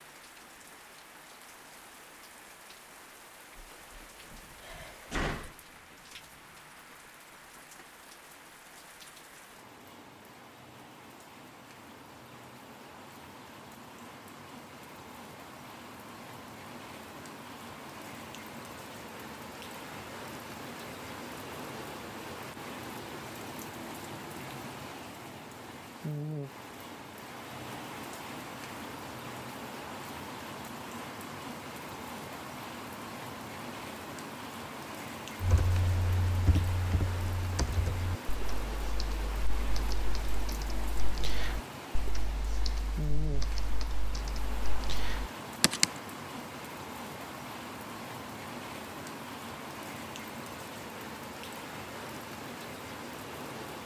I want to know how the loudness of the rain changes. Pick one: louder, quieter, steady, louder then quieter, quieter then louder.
louder.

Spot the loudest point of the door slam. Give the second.
5 s.